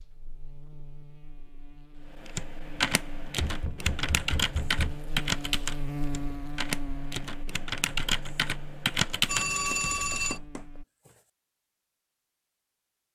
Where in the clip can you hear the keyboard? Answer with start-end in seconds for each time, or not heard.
2.2-9.8.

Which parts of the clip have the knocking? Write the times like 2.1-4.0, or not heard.
3.4-5.0, 9.7-10.7.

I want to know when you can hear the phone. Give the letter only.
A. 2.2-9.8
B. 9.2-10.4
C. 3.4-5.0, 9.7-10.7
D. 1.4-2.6
B.